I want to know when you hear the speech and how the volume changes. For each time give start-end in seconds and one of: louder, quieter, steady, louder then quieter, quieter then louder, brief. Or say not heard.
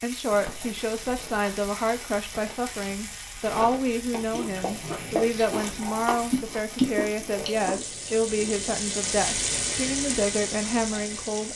0.0-11.5 steady.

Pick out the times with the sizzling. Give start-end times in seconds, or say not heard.
0.0-11.5.